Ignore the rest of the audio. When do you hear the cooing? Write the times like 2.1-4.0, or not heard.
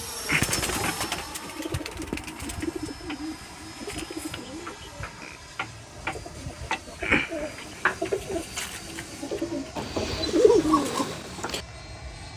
0.2-11.6.